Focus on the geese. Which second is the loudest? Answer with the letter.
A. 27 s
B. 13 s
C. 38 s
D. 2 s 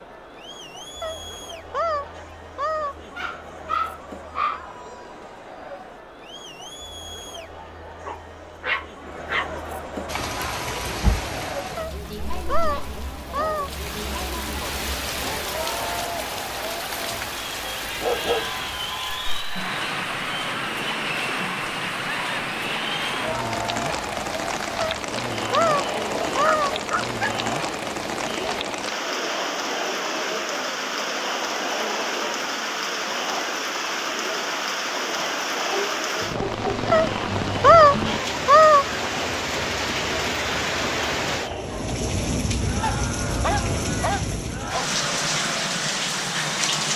C.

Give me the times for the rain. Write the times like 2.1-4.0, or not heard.
10.1-46.9.